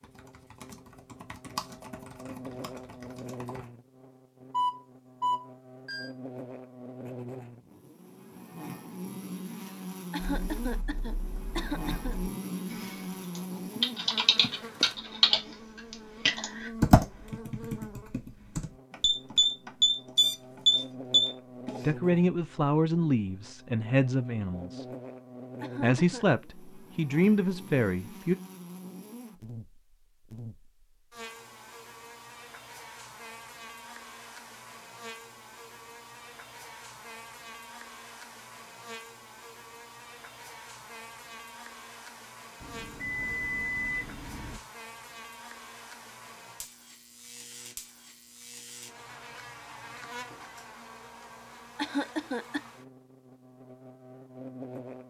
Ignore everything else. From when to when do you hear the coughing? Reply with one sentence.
The coughing can be heard from 10.1 to 12.2 s, from 25.6 to 26.2 s and from 51.8 to 52.6 s.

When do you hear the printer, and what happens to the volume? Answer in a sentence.
You can't hear the printer here.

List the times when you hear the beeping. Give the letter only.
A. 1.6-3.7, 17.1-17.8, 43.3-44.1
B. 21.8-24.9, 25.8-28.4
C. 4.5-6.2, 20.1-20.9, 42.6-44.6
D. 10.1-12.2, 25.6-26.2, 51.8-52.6
C.